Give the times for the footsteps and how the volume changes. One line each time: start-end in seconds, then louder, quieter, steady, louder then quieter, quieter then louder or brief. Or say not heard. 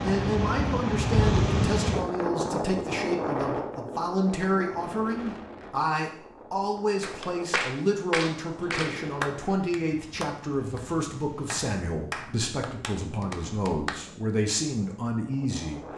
not heard.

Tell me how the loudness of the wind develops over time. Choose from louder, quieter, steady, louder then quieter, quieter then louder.
quieter.